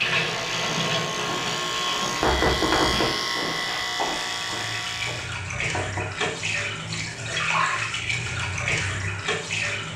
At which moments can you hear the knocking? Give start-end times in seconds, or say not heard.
2.2-3.1, 5.5-6.3.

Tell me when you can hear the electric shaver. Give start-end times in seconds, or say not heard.
0.0-5.3.